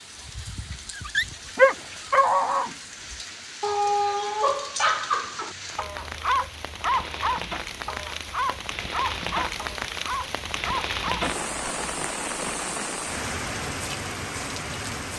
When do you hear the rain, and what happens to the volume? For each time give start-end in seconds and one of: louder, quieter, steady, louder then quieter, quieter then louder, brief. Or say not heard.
0.0-15.1 louder.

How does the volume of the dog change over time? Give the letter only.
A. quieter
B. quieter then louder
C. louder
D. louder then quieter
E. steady
A.